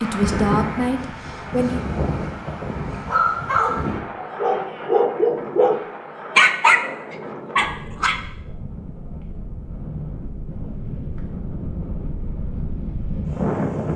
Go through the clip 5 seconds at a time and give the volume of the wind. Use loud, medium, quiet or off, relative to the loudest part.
loud, medium, loud.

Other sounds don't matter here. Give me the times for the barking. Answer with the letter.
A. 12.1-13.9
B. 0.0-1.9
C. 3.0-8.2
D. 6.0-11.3
C.